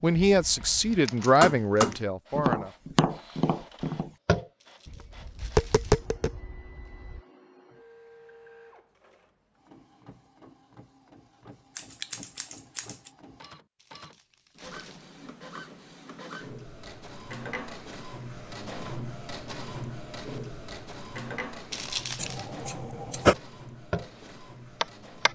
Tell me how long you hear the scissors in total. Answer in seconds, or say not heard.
4 s.